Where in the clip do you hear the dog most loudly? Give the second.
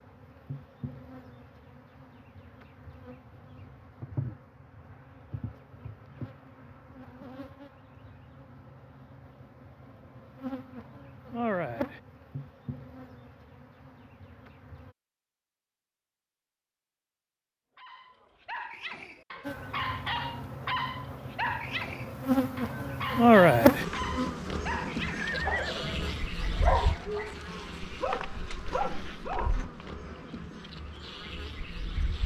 27 s.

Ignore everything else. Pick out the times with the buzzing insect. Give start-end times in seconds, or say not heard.
0.0-14.9, 19.4-32.2.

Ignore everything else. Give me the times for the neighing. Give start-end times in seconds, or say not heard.
24.9-26.2.